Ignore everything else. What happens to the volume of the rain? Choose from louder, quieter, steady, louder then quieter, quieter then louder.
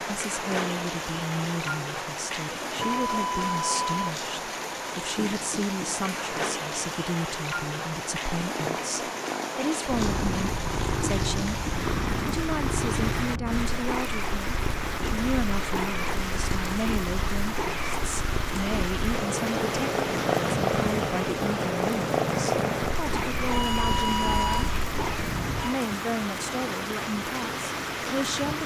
steady.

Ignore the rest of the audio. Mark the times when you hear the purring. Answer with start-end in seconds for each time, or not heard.
8.1-25.3.